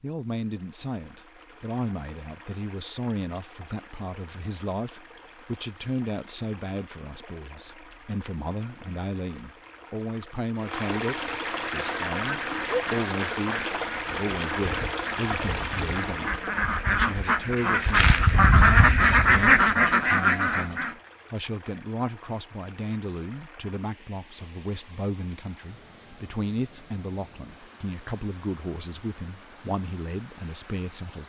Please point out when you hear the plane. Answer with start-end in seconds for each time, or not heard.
not heard.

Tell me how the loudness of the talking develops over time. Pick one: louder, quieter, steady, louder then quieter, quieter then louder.
steady.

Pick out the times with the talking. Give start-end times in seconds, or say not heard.
0.0-31.2.